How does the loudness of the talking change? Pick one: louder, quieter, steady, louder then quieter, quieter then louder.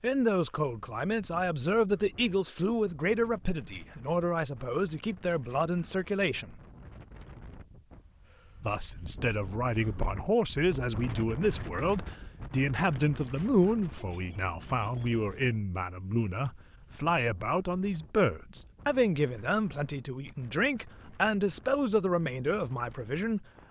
steady.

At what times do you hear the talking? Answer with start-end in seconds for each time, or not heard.
0.0-6.6, 8.6-23.4.